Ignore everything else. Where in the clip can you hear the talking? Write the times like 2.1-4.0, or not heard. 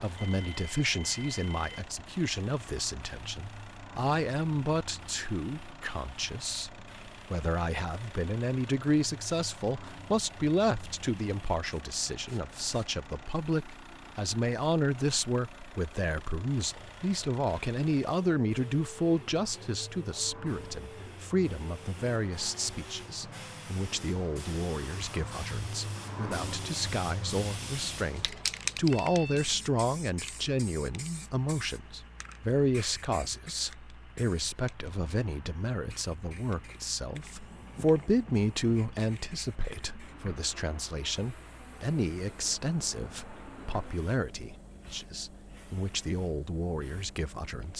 0.0-47.7.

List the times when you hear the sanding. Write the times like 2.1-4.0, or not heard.
not heard.